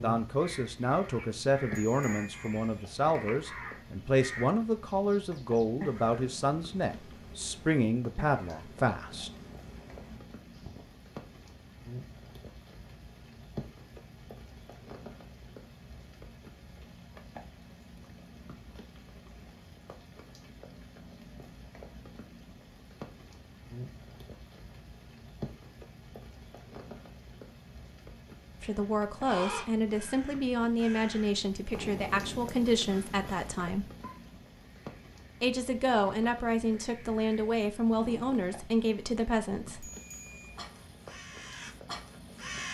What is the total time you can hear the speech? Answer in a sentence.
The speech can be heard for 19 seconds in total.